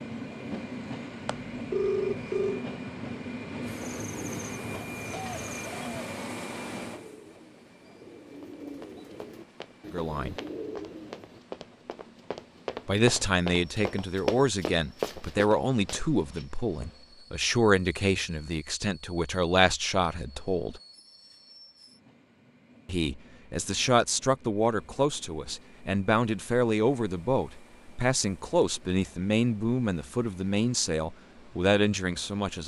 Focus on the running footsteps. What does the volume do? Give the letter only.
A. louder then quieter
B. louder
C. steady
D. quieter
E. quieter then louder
B.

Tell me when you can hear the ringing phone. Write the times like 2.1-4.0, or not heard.
1.2-2.6.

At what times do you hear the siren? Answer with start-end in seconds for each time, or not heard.
not heard.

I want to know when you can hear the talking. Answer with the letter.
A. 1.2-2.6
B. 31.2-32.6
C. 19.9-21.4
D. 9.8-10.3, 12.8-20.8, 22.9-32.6
D.